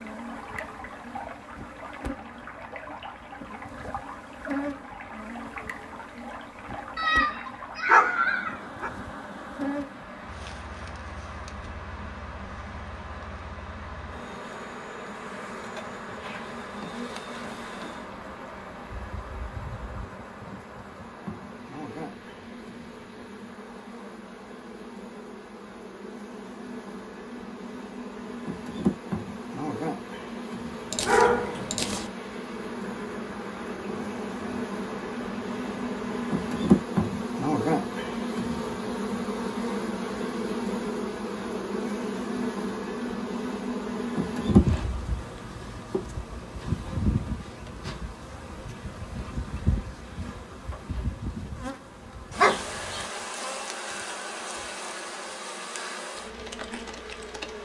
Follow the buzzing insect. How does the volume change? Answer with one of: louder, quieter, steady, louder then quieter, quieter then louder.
louder then quieter.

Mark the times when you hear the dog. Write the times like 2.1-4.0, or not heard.
7.0-8.9, 30.9-32.0, 52.4-53.0.